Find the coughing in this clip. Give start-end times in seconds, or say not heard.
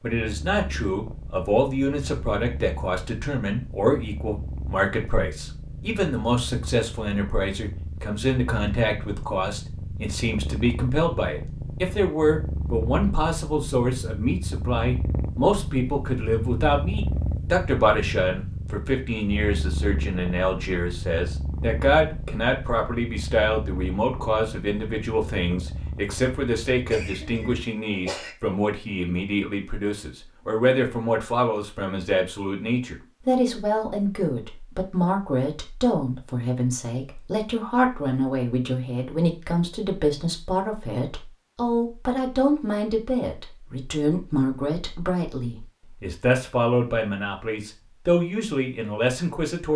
26.9-28.4.